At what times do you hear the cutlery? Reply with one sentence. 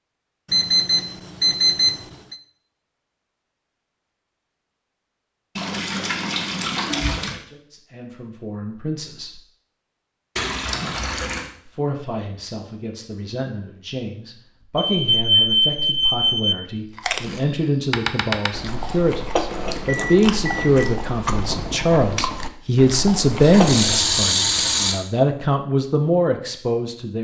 You can't hear the cutlery here.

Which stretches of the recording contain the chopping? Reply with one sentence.
The chopping can't be heard in this clip.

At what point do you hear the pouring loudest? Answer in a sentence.
The volume of the pouring peaks at 24 seconds.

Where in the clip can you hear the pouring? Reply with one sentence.
The pouring can be heard from 5.5 to 7.4 s, from 10.3 to 11.5 s and from 23.2 to 24.9 s.